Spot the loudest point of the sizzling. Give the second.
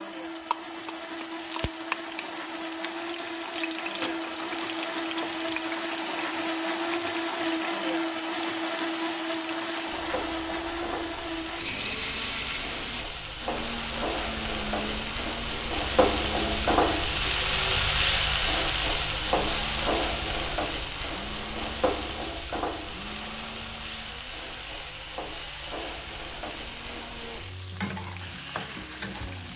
18 s.